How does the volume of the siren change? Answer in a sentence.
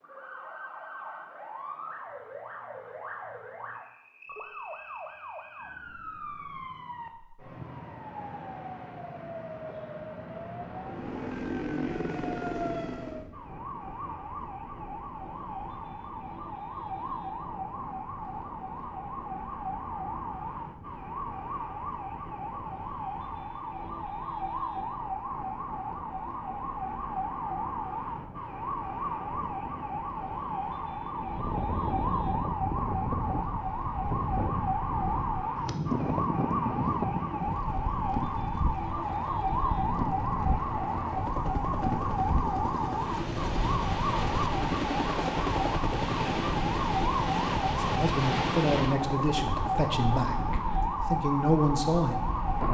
The loudness of the siren goes up.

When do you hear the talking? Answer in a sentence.
You can hear the talking from 47.7 to 52.4 s.